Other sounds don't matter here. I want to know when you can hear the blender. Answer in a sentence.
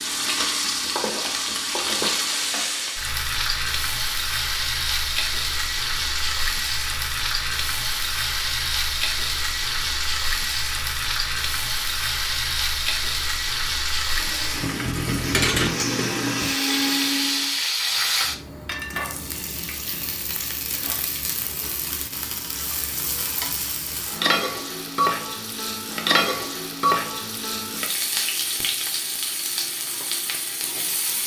You can hear the blender from 14.1 to 17.6 s.